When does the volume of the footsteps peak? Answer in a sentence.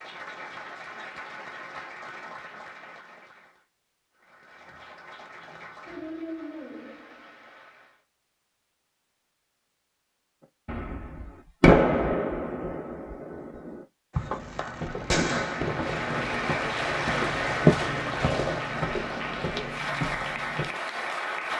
The volume of the footsteps peaks at 18 seconds.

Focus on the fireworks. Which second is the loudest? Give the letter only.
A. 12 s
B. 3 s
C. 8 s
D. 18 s
A.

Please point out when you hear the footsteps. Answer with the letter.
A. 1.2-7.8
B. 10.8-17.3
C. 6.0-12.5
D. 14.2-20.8
D.